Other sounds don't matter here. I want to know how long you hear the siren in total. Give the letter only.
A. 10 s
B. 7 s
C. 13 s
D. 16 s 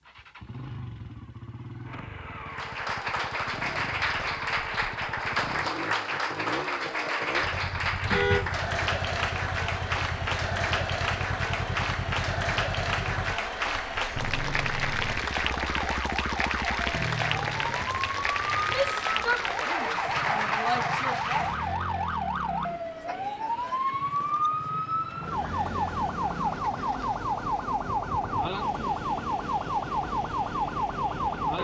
D.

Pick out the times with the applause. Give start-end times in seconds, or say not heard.
2.5-21.8.